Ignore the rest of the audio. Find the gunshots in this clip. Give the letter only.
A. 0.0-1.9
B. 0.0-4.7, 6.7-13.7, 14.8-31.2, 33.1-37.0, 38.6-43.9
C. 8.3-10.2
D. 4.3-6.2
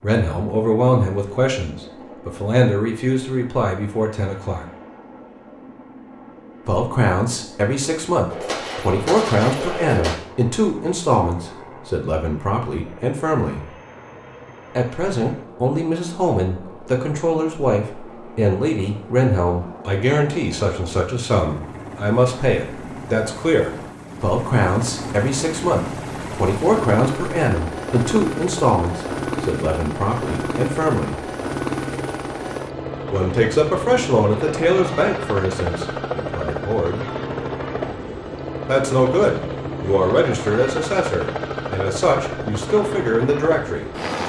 C.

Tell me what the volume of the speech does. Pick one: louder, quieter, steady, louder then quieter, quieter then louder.
steady.